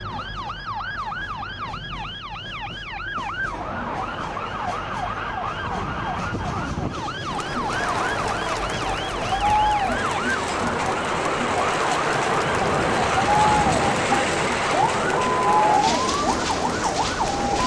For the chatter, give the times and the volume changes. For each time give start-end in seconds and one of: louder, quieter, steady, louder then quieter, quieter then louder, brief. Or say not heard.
7.2-17.6 steady.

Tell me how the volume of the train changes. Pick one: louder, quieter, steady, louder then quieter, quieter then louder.
louder.